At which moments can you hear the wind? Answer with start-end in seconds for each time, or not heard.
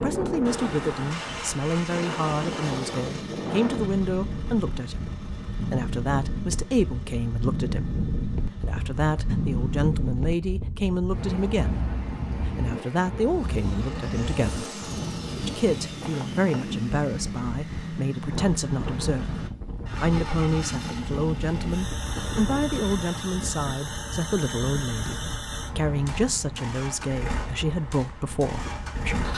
0.0-29.3.